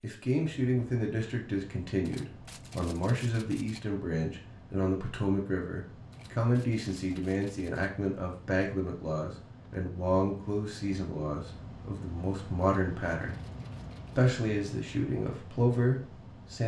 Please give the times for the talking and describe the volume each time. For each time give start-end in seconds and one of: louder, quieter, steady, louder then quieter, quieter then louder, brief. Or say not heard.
0.0-13.3 steady
14.2-16.6 brief.